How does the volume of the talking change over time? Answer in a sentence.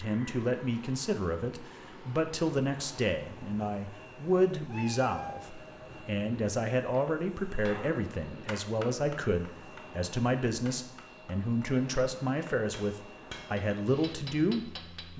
The loudness of the talking stays about the same.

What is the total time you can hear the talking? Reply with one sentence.
The talking can be heard for 15 seconds in total.